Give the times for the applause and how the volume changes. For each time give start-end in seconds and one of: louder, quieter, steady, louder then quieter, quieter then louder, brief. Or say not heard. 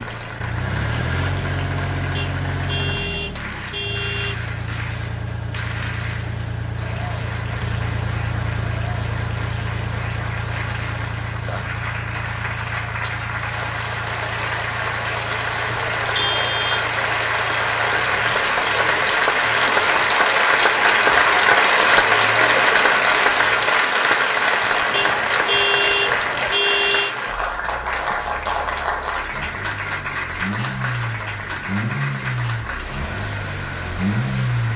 0.0-34.7 louder then quieter.